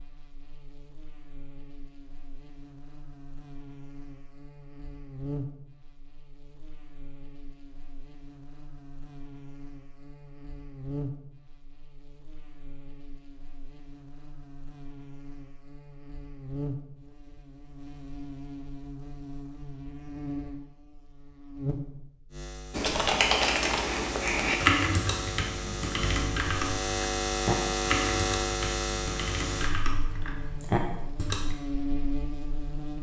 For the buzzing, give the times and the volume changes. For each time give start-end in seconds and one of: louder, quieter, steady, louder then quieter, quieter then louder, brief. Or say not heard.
0.0-32.9 louder.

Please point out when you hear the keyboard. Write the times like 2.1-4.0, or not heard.
22.7-31.6.